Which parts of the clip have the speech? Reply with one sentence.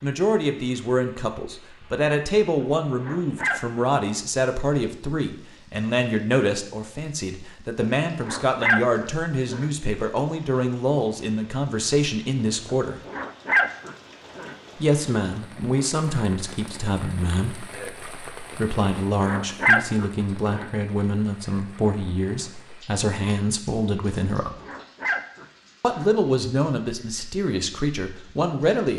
You can hear the speech from 0.0 to 13.0 s, from 14.8 to 24.5 s and from 25.8 to 28.9 s.